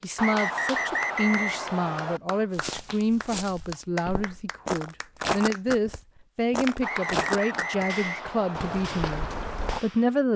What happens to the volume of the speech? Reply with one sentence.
The volume of the speech stays about the same.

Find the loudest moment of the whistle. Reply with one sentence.
The loudest moment of the whistle is at 1 second.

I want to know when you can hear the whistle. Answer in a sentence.
The whistle can be heard from 0.1 to 2.2 s and from 6.8 to 8.8 s.